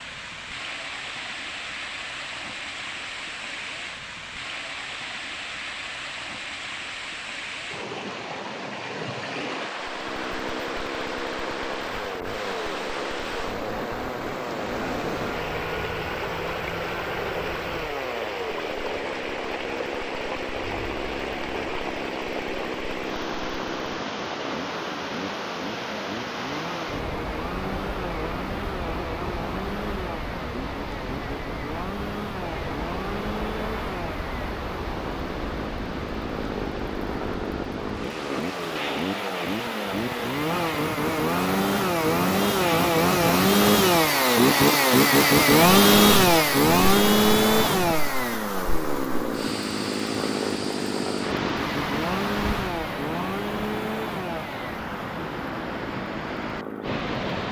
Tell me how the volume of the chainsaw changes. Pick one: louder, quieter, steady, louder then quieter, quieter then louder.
louder then quieter.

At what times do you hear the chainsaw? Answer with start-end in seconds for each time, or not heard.
9.7-57.4.